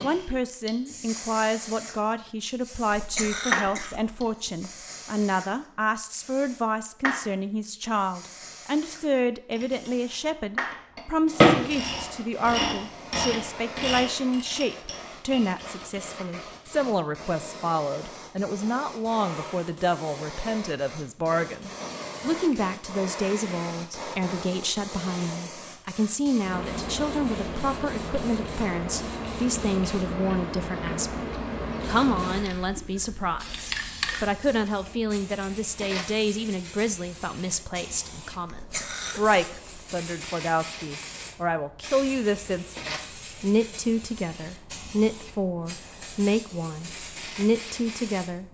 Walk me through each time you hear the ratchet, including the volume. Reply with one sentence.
The ratchet can be heard from 9.5 to 16.1 s, getting louder then quieter.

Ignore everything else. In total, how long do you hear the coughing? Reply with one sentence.
You can hear the coughing for 3 seconds altogether.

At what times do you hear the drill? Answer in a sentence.
The drill can't be heard in this clip.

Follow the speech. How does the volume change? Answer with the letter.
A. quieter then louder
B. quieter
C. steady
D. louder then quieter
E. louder
C.